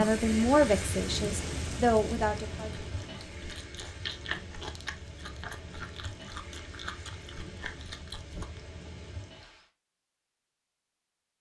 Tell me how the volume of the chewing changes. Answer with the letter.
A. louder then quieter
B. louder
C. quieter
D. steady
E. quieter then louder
C.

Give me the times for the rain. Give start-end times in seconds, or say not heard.
0.0-9.7.